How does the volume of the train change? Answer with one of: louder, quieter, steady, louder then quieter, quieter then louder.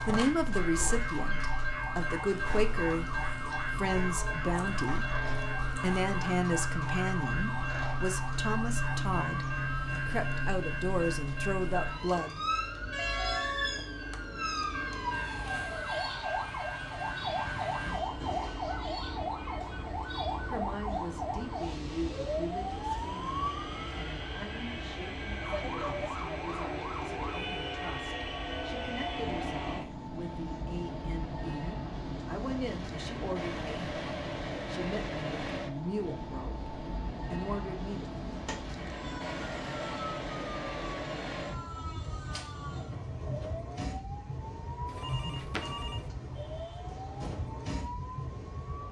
steady.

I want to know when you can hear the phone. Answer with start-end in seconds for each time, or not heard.
44.9-46.1.